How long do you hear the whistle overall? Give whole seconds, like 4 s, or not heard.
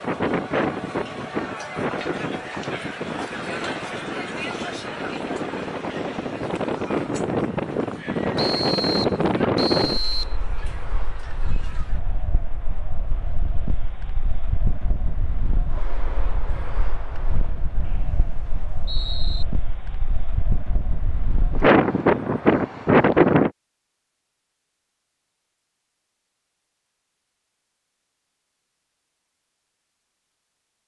4 s.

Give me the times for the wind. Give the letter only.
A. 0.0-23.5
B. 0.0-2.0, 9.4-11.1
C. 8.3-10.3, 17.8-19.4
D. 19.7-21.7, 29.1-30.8
A.